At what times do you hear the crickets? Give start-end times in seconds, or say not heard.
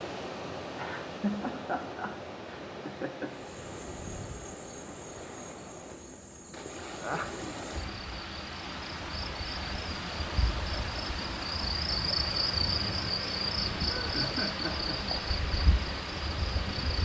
3.3-17.0.